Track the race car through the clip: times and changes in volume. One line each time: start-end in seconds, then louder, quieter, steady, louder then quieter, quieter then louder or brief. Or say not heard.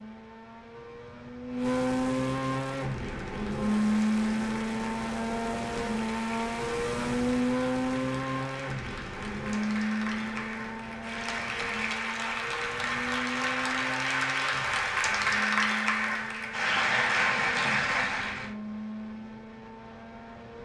0.0-20.6 quieter.